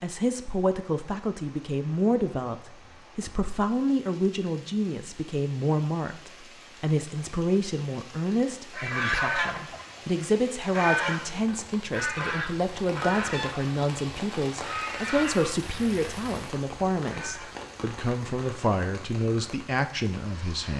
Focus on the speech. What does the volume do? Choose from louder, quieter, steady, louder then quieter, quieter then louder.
steady.